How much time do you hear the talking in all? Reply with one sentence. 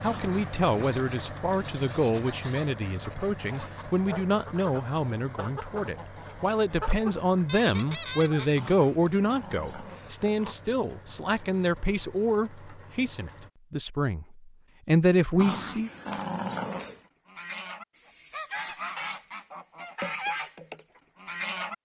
You can hear the talking for 16 seconds altogether.